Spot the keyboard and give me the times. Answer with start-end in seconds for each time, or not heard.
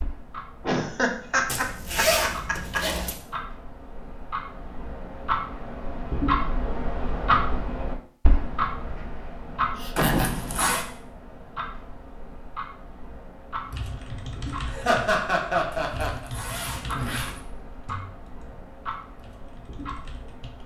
13.6-20.6.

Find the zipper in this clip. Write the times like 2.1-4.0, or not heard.
1.4-3.1, 9.9-10.8, 15.7-17.4.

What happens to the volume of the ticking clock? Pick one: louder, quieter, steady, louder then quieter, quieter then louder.
louder then quieter.